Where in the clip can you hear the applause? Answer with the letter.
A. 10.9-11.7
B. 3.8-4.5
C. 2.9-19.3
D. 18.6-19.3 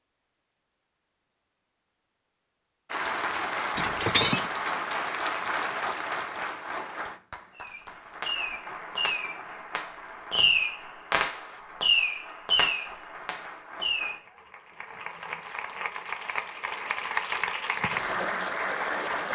C.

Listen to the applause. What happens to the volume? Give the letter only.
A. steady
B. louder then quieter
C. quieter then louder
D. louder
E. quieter
C.